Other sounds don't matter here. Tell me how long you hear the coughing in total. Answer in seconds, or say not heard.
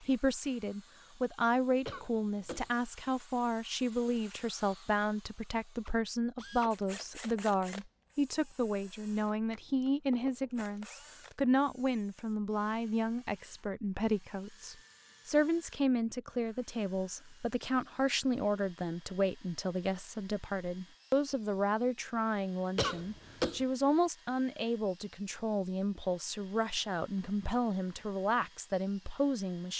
2 s.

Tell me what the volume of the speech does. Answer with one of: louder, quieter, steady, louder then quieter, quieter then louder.
steady.